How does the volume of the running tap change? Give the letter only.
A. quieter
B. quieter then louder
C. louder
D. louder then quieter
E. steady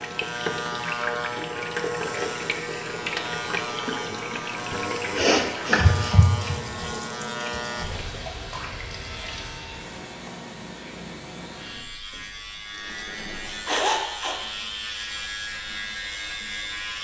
A.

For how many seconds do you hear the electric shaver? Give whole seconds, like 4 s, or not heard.
17 s.